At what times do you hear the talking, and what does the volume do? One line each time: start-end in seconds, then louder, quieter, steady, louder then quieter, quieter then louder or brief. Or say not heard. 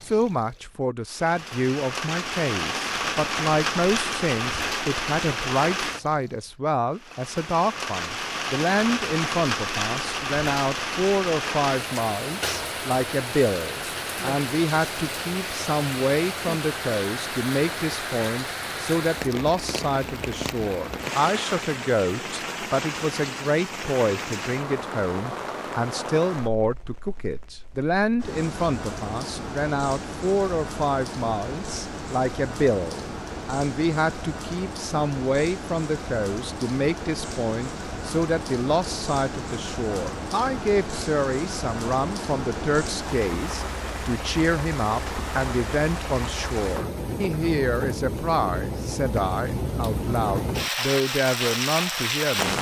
0.1-52.5 steady.